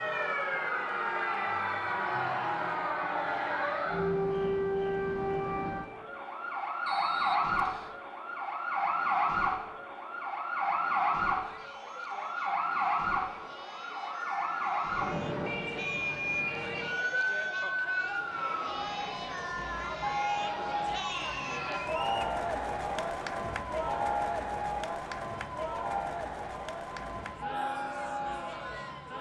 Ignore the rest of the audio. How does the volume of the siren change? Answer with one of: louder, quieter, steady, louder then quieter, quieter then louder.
quieter.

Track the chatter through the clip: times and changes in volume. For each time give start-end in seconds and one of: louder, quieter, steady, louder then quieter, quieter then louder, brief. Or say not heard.
0.0-29.1 louder.